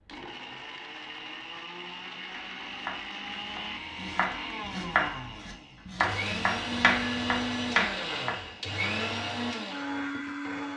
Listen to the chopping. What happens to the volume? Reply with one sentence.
The volume of the chopping goes up.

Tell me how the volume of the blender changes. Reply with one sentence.
The volume of the blender goes up.